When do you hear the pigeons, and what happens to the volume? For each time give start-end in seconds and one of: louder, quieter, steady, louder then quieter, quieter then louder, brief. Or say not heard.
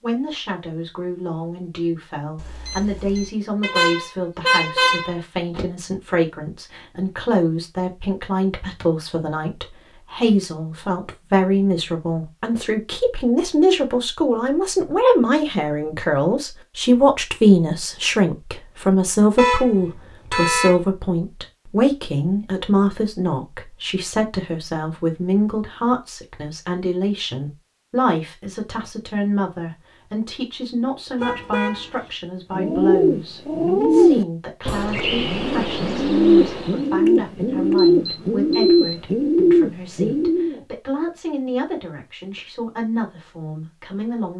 32.5-40.6 quieter then louder.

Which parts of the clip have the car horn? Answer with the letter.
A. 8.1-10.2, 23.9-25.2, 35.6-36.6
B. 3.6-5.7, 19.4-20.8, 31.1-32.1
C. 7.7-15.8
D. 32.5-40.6
B.